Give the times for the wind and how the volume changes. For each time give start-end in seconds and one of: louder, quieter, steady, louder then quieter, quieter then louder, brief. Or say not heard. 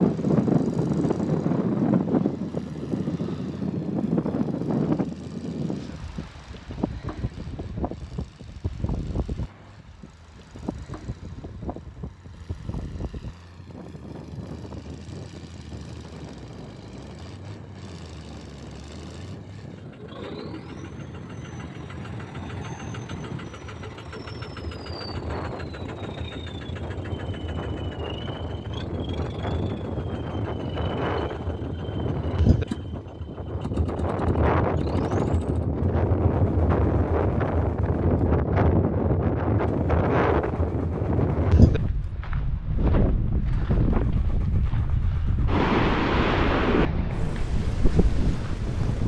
0.0-49.0 quieter then louder.